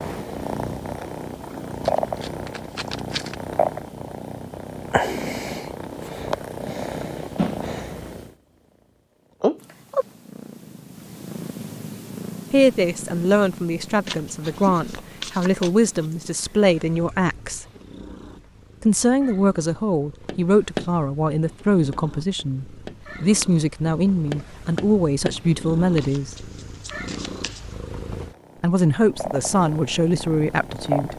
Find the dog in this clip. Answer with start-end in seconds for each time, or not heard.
not heard.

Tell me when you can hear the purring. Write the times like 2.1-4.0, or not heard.
0.0-8.3, 9.4-31.1.